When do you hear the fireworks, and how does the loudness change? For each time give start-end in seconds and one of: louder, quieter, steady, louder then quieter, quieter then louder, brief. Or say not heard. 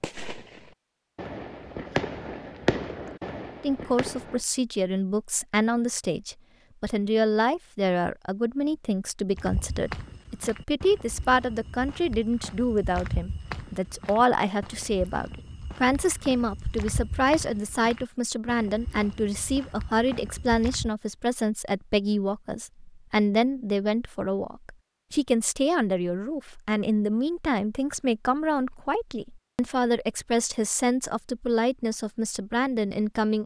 0.0-4.4 louder then quieter.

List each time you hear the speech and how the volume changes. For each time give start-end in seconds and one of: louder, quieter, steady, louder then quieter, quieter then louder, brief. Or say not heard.
3.6-33.4 steady.